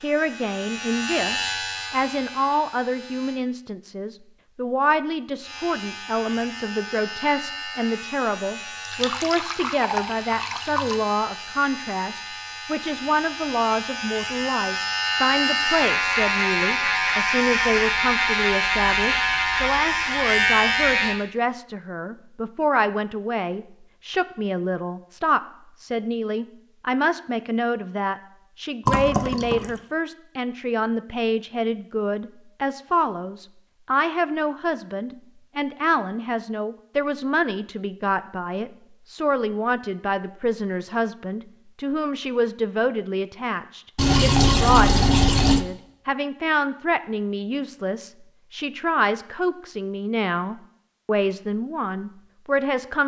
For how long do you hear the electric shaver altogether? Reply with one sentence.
The electric shaver can be heard for 19 seconds in total.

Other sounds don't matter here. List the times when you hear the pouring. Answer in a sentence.
The pouring can be heard from 8.8 to 11.0 s, from 28.9 to 29.8 s and from 44.0 to 45.6 s.